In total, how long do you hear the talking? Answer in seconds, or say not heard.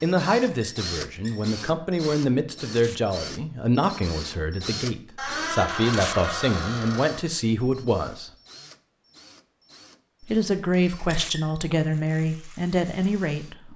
12 s.